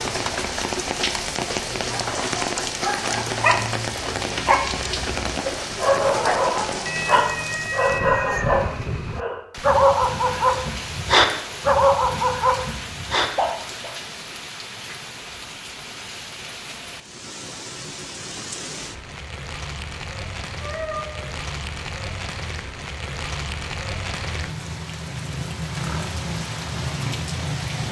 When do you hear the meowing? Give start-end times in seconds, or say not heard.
6.8-8.7, 20.6-21.2.